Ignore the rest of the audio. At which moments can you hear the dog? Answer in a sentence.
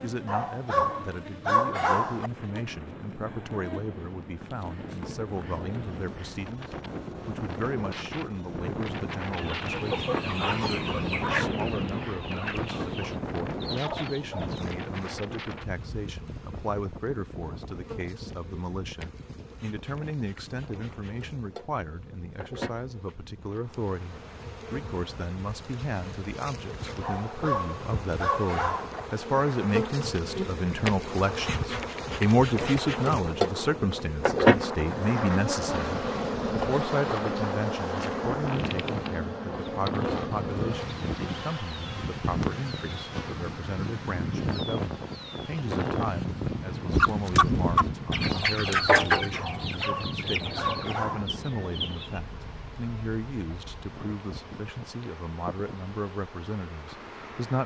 You can hear the dog from 0.2 to 2.3 s, from 27.0 to 29.0 s and from 49.4 to 51.2 s.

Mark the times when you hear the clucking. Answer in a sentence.
The clucking can be heard from 9.3 to 14.7 s and from 46.9 to 52.2 s.